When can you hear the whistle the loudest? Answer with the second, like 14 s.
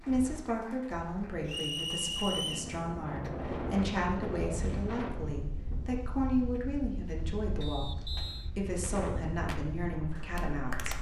2 s.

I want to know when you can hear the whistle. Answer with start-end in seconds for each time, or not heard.
1.4-2.7, 7.6-8.5.